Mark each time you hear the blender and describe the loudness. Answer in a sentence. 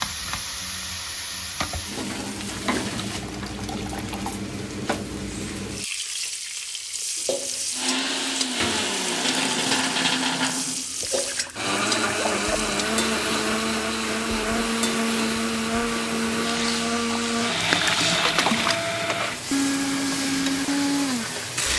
You can hear the blender from 7.2 to 21.7 s, at a steady volume.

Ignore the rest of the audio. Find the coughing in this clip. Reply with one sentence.
The coughing can't be heard in this clip.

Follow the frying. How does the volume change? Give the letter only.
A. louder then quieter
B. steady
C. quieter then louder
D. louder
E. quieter
B.